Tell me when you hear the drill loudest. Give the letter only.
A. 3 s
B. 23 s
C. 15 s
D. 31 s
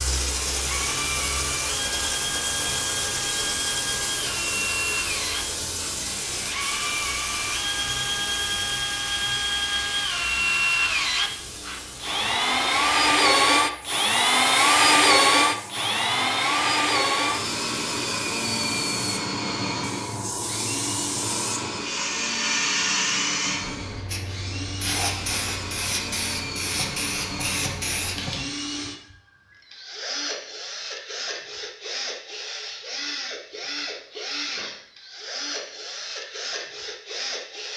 C.